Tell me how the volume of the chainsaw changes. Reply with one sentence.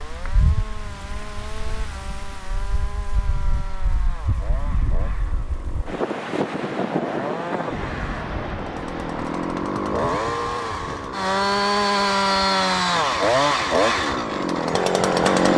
The volume of the chainsaw goes up.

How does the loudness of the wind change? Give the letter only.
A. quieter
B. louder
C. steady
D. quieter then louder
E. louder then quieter
E.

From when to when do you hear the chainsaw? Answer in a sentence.
The chainsaw can be heard from 0.0 to 15.5 s.